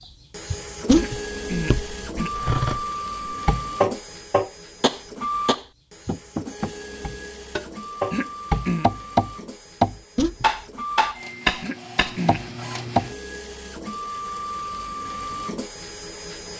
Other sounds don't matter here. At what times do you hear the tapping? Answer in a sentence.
The tapping can be heard from 3.2 to 13.1 s.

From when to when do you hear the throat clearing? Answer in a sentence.
The throat clearing can be heard from 0.9 to 2.4 s, from 8.1 to 8.9 s and from 11.6 to 12.4 s.